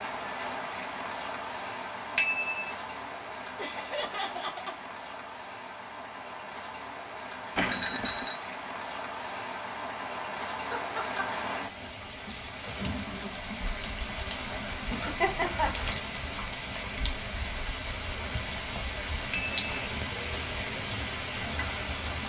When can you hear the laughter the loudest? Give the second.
15 s.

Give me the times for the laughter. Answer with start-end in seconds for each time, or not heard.
3.5-4.8, 10.7-11.2, 14.9-15.7.